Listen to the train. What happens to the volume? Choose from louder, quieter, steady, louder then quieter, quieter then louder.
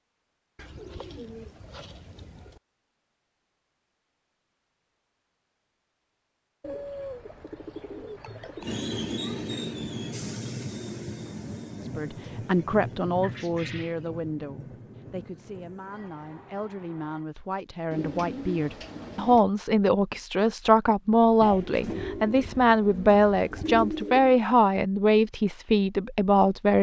quieter.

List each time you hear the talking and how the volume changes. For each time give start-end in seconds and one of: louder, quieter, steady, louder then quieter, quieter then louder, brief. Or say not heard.
11.9-26.7 quieter then louder.